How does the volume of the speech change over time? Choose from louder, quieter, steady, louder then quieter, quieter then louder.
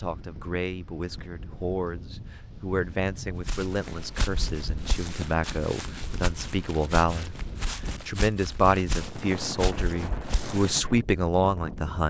louder.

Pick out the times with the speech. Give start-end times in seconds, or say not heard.
0.0-7.3, 8.1-12.0.